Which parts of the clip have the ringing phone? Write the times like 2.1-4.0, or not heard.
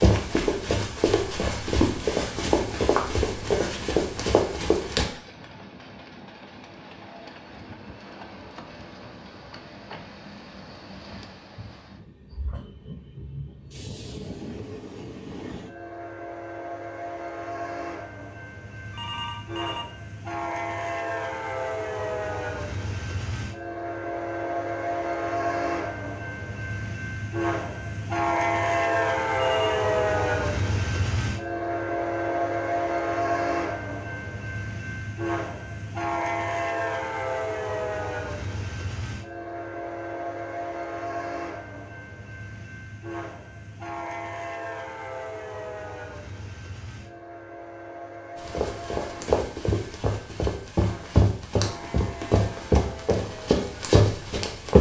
18.9-19.9, 29.4-29.9.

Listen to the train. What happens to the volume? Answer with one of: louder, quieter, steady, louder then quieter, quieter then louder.
louder then quieter.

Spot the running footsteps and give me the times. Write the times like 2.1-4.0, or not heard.
0.0-5.0, 48.4-54.7.